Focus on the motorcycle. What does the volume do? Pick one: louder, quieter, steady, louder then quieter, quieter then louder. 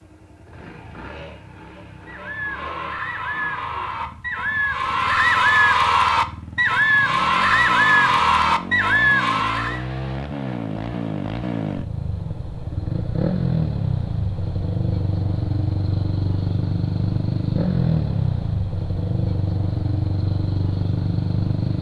louder.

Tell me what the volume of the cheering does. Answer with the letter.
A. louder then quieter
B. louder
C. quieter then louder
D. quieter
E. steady
B.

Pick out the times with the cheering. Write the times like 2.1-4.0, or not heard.
2.0-9.8.